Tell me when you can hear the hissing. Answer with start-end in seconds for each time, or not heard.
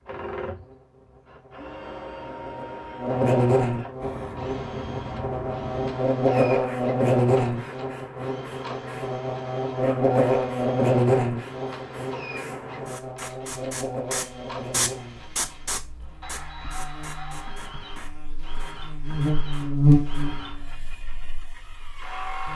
4.0-22.5.